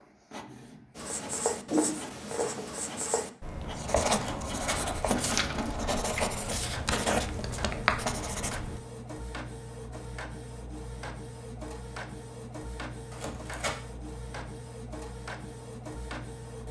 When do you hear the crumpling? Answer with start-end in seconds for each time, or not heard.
4.2-5.0, 13.1-13.8.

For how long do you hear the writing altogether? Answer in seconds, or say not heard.
8 s.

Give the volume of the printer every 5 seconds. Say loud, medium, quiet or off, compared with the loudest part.
medium, loud, loud, loud.